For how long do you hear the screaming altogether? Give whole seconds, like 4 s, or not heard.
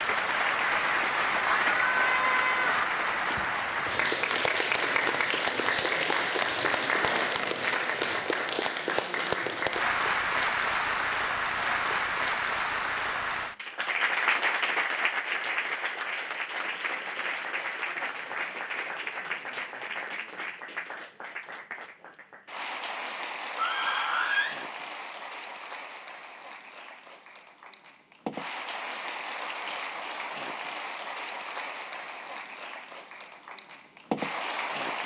2 s.